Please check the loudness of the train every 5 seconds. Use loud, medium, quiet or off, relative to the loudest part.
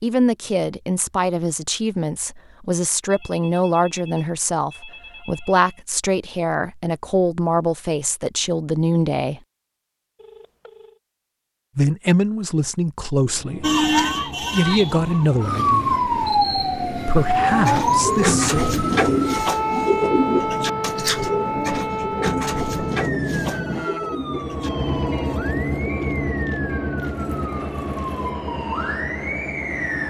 off, off, medium, medium, loud, loud.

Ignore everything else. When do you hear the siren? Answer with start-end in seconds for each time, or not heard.
13.6-30.0.